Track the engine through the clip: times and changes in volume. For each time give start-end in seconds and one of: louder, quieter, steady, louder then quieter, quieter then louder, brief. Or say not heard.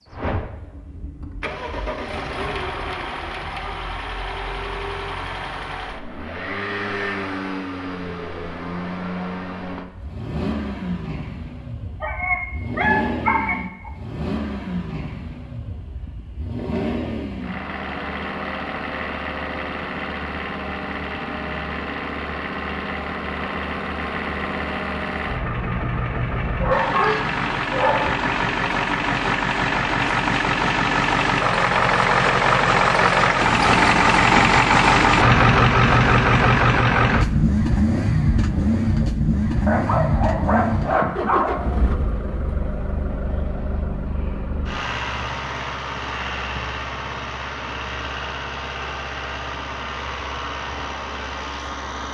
0.0-52.0 louder then quieter.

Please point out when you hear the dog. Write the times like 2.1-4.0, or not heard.
12.0-13.9, 26.6-28.1, 39.6-41.9.